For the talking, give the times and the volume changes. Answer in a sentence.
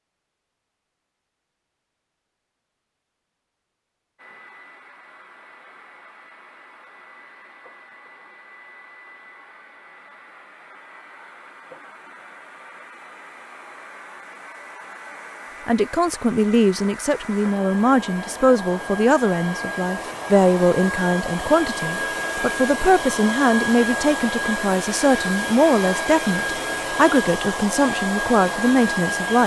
You can hear the talking from 15.7 to 29.4 s, at a steady volume.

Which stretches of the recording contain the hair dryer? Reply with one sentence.
You can hear the hair dryer from 4.2 to 29.4 s.